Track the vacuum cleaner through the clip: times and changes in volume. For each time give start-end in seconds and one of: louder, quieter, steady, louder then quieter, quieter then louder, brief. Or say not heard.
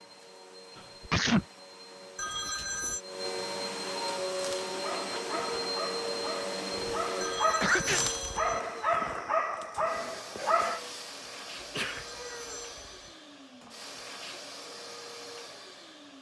0.0-16.1 louder then quieter.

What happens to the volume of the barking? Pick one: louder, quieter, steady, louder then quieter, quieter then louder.
louder.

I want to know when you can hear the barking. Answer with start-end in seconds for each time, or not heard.
4.3-10.8.